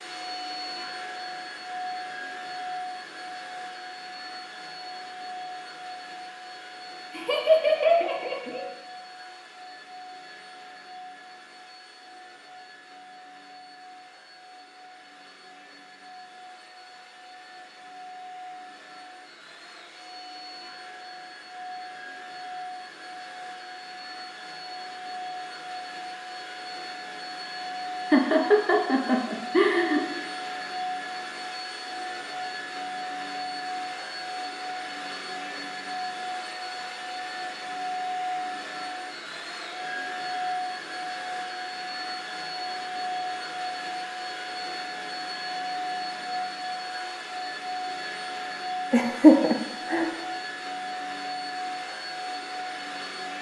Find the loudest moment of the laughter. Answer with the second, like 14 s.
49 s.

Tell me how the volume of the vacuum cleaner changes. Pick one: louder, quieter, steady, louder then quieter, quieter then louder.
quieter then louder.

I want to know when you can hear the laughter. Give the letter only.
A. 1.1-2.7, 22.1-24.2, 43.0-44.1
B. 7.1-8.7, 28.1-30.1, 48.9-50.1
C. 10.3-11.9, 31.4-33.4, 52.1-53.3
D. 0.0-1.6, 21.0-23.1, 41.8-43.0
B.